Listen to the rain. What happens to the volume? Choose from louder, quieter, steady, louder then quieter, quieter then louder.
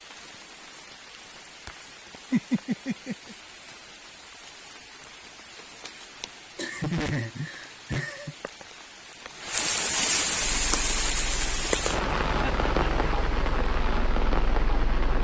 louder.